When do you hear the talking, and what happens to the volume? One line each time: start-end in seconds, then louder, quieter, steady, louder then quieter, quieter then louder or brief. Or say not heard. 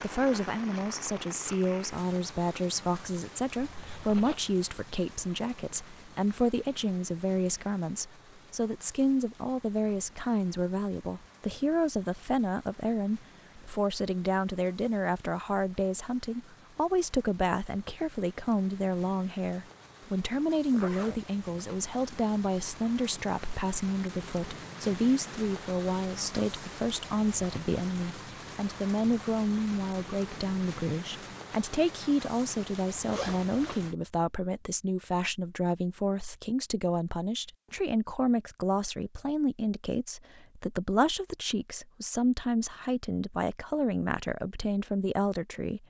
0.0-45.8 steady.